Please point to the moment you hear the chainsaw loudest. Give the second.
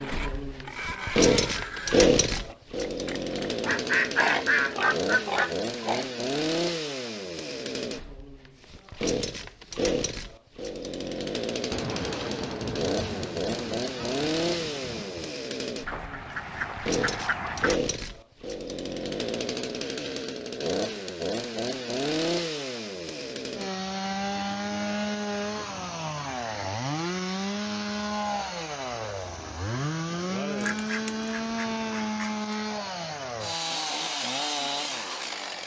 2 s.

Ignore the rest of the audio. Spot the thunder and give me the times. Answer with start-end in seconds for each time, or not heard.
11.7-15.3, 30.1-32.1.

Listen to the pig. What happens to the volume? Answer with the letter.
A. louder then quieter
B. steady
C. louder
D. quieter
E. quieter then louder
E.